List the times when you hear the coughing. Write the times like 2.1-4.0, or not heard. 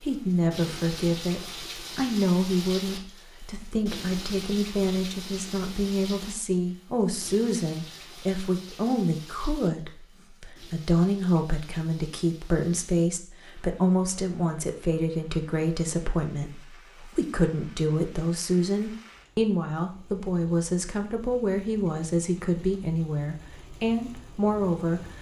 not heard.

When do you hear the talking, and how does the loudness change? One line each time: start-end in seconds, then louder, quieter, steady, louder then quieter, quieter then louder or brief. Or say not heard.
0.0-25.1 steady.